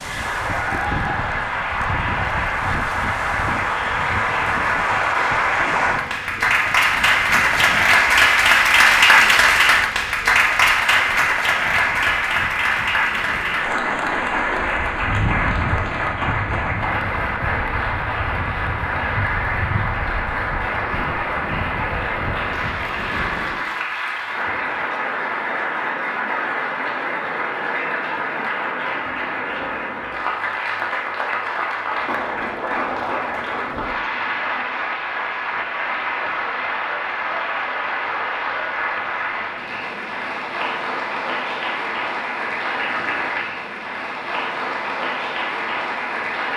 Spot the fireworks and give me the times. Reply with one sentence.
The fireworks can't be heard in this clip.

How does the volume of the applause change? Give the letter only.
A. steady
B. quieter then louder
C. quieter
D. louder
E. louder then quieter
C.